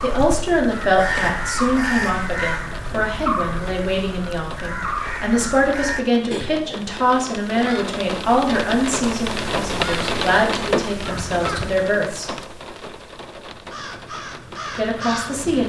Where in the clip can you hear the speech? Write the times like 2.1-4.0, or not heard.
0.0-12.3, 14.8-15.6.